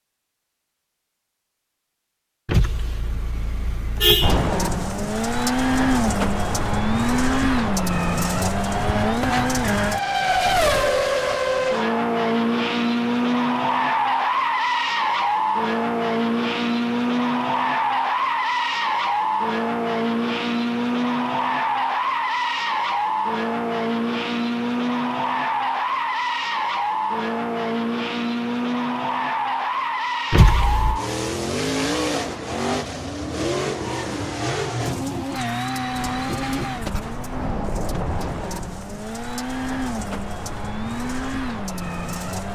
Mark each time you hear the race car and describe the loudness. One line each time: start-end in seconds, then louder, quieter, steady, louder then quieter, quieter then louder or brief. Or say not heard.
4.2-42.4 quieter.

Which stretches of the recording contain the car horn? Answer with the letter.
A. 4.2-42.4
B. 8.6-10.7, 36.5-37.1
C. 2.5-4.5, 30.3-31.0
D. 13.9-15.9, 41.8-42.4
C.